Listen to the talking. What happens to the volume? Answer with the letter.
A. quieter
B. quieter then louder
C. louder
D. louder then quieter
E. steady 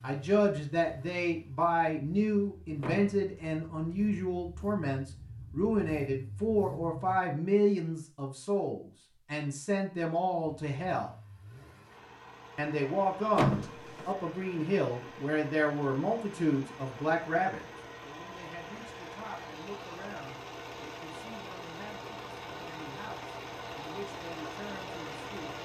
A.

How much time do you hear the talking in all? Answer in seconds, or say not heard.
24 s.